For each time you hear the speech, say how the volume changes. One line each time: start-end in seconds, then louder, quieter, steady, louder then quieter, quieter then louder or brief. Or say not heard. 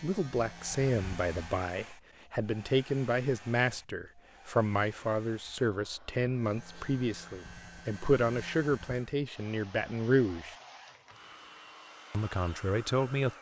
0.0-10.6 steady
12.1-13.3 brief.